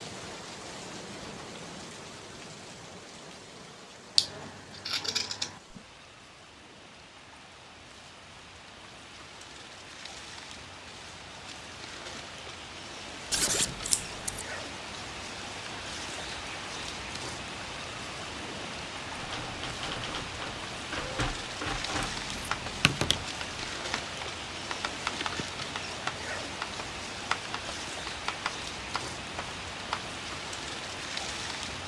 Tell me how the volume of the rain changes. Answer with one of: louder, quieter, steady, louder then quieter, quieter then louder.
louder.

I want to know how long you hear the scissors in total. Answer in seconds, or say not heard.
4 s.